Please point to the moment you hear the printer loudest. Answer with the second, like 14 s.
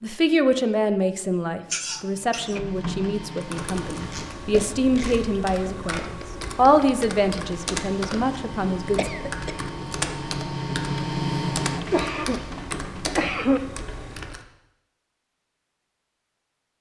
11 s.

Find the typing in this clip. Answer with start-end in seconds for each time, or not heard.
3.4-14.4.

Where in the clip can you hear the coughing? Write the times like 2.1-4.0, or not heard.
1.7-2.6, 8.9-9.6, 11.8-13.6.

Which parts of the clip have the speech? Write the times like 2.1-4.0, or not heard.
0.0-9.1.